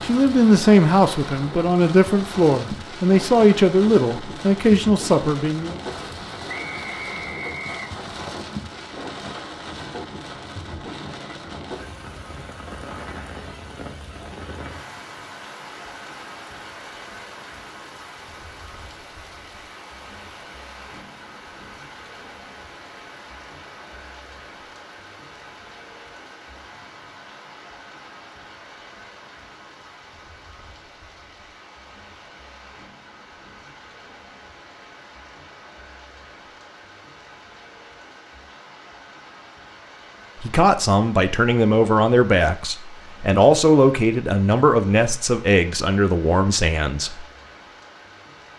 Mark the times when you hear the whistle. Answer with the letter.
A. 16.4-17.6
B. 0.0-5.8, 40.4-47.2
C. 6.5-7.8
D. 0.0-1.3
C.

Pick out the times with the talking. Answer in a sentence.
You can hear the talking from 0.0 to 5.8 s and from 40.4 to 47.2 s.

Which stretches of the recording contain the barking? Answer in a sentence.
You can't hear the barking here.